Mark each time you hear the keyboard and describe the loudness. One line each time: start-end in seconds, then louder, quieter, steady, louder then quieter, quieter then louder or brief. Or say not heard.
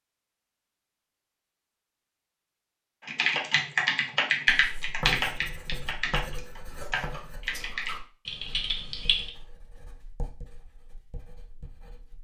3.0-9.3 quieter.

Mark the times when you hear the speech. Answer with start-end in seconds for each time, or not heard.
not heard.